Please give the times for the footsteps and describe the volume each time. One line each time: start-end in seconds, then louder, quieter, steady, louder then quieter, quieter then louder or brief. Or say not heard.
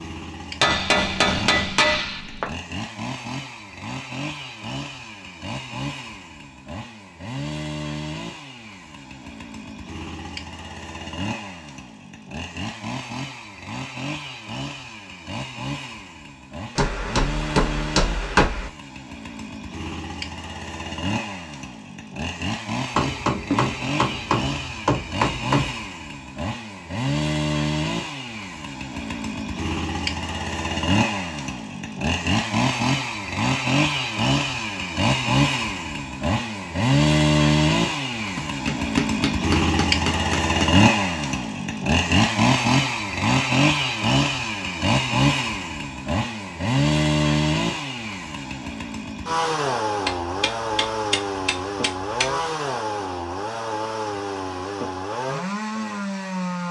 not heard.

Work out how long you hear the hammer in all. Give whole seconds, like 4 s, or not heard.
11 s.